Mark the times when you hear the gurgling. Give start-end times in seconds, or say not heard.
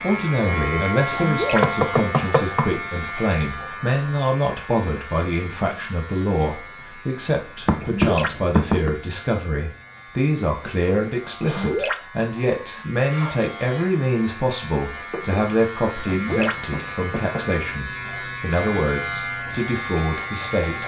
1.1-1.6, 7.8-8.3, 11.4-12.0, 16.1-16.6.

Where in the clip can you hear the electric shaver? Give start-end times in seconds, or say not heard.
0.0-20.8.